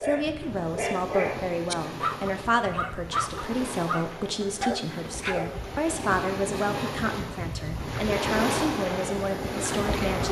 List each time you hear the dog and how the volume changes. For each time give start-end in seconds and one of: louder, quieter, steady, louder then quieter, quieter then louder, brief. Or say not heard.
0.0-5.5 steady.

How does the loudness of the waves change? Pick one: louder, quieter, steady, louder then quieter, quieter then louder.
louder.